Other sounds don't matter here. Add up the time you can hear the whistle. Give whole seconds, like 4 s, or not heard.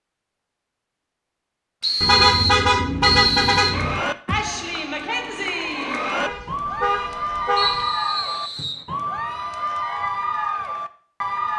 3 s.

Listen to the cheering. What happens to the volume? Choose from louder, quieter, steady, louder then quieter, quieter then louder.
steady.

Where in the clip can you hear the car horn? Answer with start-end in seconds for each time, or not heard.
2.0-4.0, 6.2-7.9.